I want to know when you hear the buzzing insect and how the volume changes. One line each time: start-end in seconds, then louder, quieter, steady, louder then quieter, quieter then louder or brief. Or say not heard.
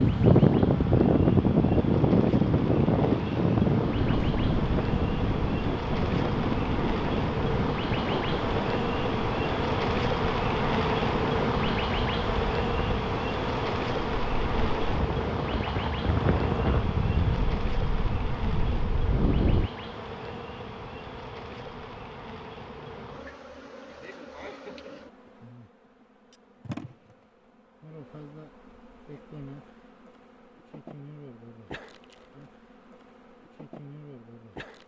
0.0-34.8 louder then quieter.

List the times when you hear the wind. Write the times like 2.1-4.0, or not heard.
0.0-19.7.